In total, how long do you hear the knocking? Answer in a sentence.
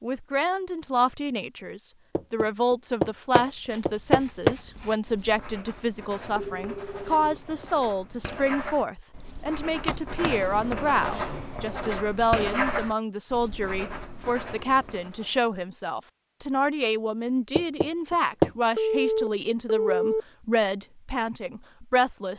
You can hear the knocking for 4 seconds altogether.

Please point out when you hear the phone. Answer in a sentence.
You can hear the phone from 6.3 to 7.7 s and from 18.8 to 20.2 s.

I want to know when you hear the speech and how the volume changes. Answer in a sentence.
The speech can be heard from 0.0 to 22.3 s, at a steady volume.